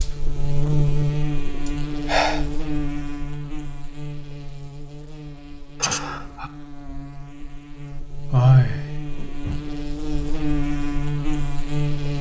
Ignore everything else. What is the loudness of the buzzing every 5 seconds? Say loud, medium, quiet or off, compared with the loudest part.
loud, medium, loud.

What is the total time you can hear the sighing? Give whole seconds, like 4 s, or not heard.
3 s.